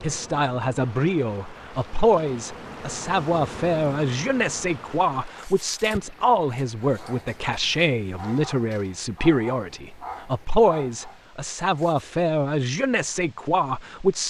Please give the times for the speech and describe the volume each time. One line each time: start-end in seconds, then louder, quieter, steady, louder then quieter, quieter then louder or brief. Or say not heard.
0.0-14.2 steady.